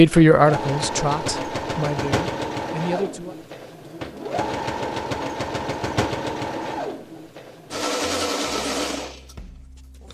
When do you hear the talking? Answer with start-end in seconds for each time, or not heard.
0.0-3.4.